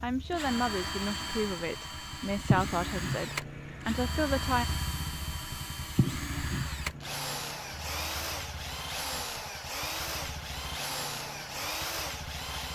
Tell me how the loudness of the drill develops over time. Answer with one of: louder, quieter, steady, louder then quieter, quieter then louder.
steady.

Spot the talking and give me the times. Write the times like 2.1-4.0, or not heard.
0.0-4.7.